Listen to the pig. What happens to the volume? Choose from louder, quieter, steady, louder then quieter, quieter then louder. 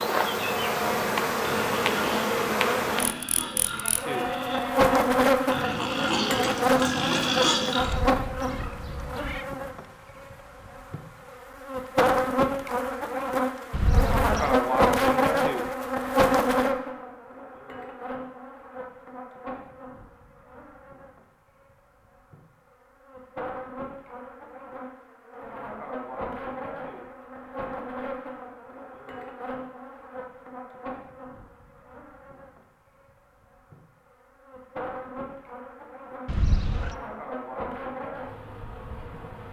louder.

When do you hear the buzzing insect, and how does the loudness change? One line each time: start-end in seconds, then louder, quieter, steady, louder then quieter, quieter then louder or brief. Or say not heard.
0.0-39.4 quieter.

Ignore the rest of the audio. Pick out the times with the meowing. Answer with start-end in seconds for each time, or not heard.
7.8-9.4, 13.7-14.6, 36.2-37.0.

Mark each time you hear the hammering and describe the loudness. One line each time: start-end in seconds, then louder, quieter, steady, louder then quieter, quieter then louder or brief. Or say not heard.
not heard.